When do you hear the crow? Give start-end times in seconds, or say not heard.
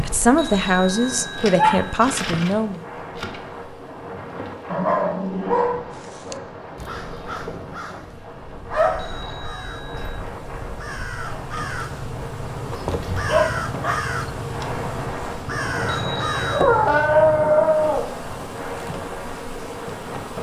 5.9-17.5.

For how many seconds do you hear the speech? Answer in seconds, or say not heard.
3 s.